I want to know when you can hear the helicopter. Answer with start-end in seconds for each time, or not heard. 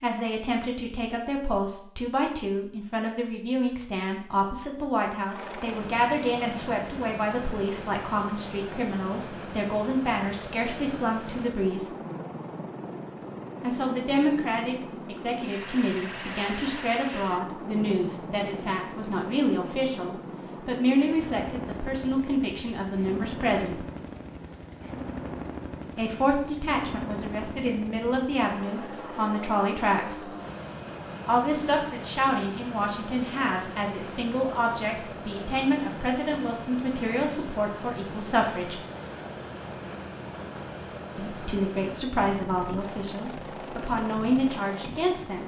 5.3-45.4.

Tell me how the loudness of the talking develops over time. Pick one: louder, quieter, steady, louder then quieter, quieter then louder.
steady.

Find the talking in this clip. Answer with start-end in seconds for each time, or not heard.
0.0-11.9, 13.6-23.9, 25.9-30.4, 31.2-38.9, 41.1-45.4.